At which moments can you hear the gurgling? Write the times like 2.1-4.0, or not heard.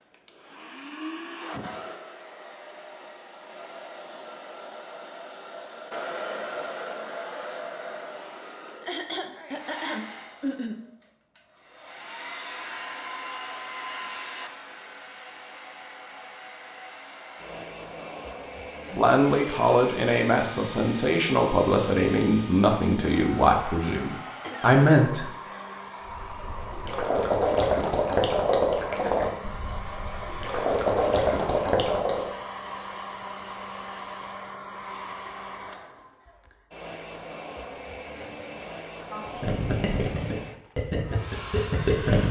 26.1-32.3, 39.2-42.2.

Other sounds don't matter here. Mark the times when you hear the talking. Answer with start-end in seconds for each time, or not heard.
18.9-25.4.